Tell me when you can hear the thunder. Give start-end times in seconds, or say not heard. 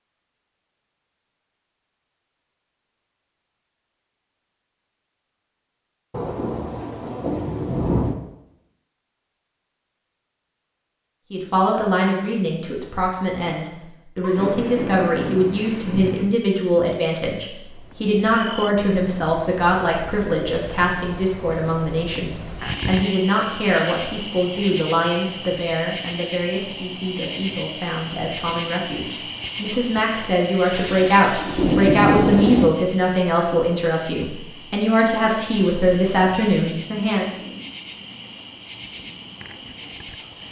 6.1-8.2, 14.2-16.2, 30.6-32.6.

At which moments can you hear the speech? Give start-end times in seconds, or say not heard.
11.3-37.3.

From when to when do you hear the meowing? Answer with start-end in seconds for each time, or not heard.
not heard.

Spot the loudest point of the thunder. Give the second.
32 s.